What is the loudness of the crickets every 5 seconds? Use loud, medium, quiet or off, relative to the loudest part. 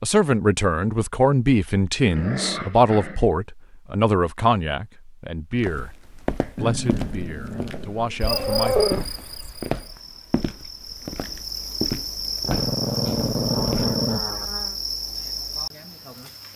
off, loud, loud, loud.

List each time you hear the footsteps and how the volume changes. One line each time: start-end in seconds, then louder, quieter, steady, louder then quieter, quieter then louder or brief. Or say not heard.
5.5-14.1 steady.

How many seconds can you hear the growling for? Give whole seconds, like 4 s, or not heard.
6 s.